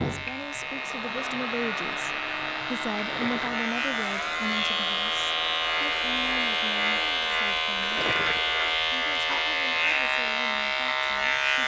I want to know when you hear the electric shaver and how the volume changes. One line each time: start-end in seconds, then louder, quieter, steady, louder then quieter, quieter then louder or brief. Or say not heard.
0.0-11.6 louder.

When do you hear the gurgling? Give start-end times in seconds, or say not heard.
3.0-3.6, 7.8-8.4.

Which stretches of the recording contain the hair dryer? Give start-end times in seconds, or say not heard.
0.0-8.8.